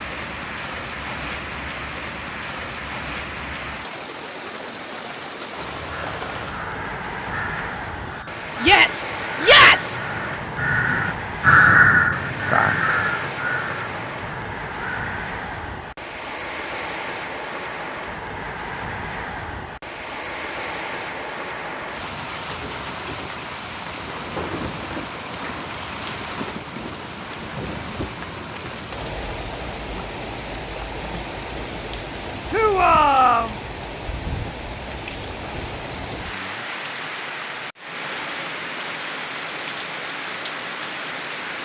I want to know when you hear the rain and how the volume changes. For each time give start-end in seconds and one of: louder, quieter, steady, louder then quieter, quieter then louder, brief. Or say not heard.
0.0-41.6 steady.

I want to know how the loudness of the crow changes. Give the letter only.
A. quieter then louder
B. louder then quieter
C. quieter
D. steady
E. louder
B.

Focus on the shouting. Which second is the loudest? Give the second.
10 s.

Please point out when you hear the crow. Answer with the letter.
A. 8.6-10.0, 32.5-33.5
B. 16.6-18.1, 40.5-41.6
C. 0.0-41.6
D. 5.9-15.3
D.